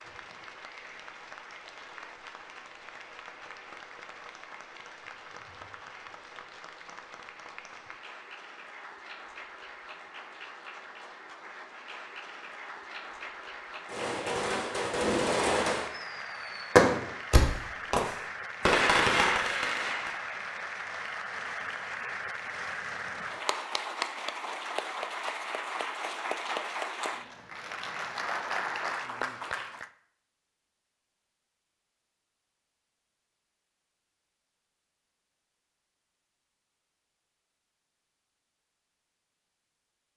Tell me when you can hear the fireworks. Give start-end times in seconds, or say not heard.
13.8-20.1.